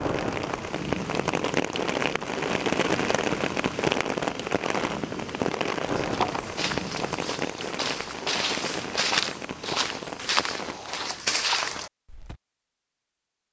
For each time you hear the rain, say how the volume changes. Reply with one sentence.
The rain can be heard from 0.0 to 10.8 s, getting quieter.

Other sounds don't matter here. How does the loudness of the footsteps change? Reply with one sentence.
The volume of the footsteps goes up.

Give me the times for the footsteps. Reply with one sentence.
You can hear the footsteps from 5.9 to 12.3 s.